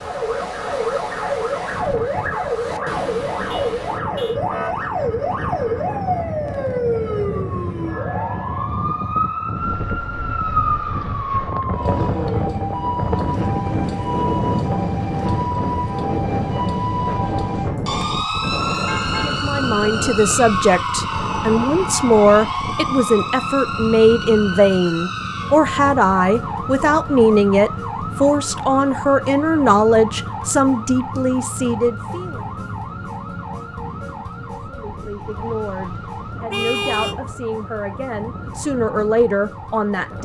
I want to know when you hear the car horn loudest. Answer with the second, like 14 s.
37 s.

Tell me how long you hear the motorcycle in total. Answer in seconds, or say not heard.
not heard.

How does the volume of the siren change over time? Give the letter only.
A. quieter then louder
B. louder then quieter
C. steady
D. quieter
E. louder
D.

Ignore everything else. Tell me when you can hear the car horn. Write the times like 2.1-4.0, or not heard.
3.5-4.4, 18.6-19.6, 36.5-37.1.